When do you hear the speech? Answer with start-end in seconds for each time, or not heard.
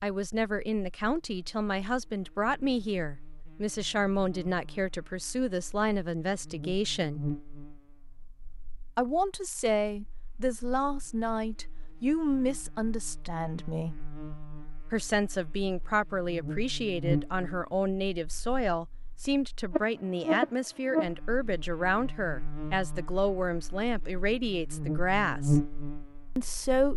0.0-7.2, 8.9-13.9, 14.9-25.6, 26.4-26.9.